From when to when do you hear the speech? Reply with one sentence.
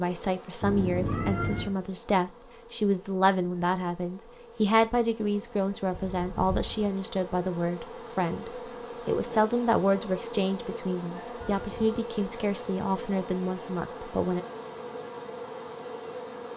The speech can be heard from 0.0 to 14.4 s.